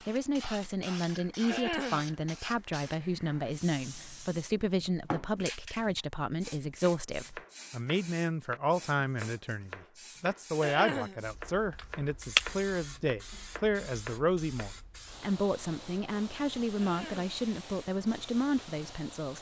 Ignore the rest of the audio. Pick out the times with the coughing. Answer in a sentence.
You can hear the coughing from 1.4 to 2.0 s, from 10.6 to 11.2 s and from 16.8 to 17.4 s.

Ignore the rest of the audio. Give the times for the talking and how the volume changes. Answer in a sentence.
The talking can be heard from 0.1 to 19.3 s, at a steady volume.